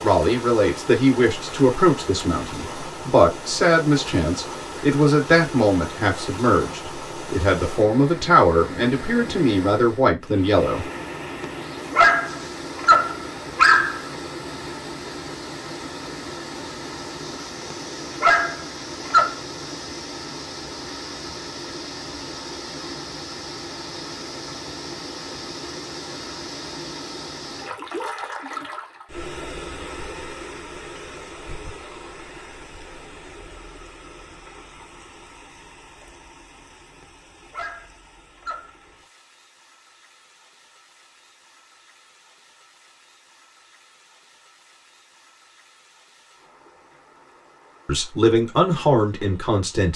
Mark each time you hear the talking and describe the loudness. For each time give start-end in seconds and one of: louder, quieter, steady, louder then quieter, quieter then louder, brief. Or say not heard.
0.0-10.8 steady
47.9-49.9 brief.